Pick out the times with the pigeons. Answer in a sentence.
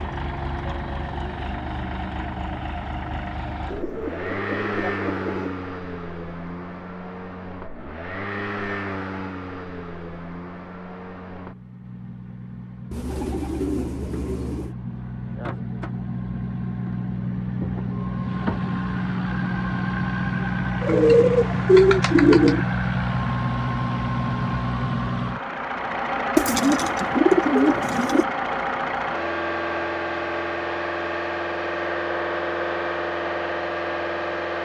You can hear the pigeons from 3.6 to 5.6 s, from 12.9 to 14.8 s, from 20.8 to 22.6 s and from 26.4 to 28.2 s.